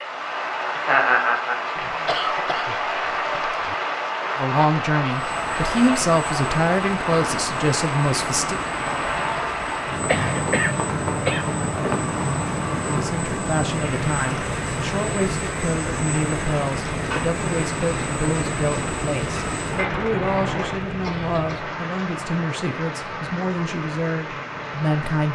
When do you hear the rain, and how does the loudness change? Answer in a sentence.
The rain can be heard from 0.0 to 25.3 s, getting quieter.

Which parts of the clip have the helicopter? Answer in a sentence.
You can hear the helicopter from 5.1 to 20.9 s.